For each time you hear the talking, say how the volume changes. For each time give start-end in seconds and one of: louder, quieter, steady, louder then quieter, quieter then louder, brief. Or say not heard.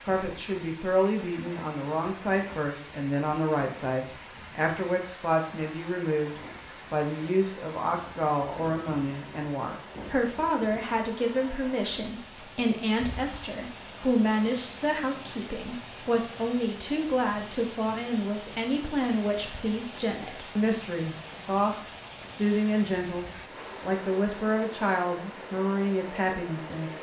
0.1-26.9 steady.